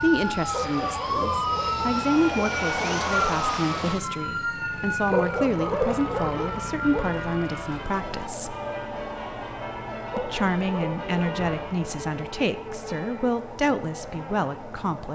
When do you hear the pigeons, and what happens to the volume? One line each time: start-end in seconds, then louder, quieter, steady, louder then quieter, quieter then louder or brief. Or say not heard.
not heard.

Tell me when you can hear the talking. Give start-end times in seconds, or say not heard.
0.0-8.6, 10.2-15.1.